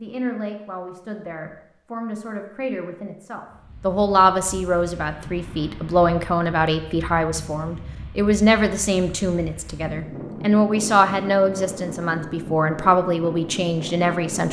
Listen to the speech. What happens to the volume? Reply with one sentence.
The loudness of the speech goes up.